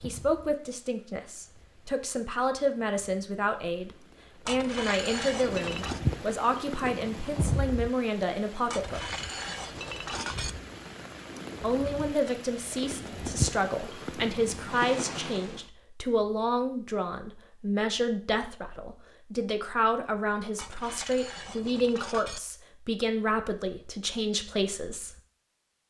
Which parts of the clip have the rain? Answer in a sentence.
You can hear the rain from 0.0 to 15.7 s.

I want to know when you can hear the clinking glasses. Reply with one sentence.
The clinking glasses can be heard from 4.5 to 6.0 s, from 8.7 to 10.5 s and from 20.6 to 22.4 s.